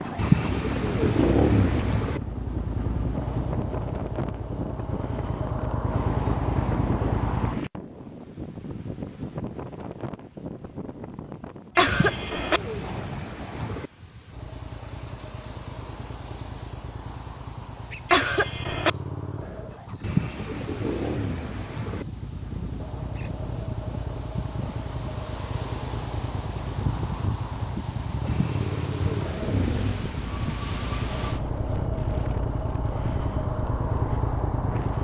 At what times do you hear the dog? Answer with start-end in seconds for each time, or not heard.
not heard.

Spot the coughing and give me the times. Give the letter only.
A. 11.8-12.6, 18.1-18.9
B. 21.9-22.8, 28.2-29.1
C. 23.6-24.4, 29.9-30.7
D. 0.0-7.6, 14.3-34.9
A.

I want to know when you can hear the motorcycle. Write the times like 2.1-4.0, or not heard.
0.0-7.6, 14.3-34.9.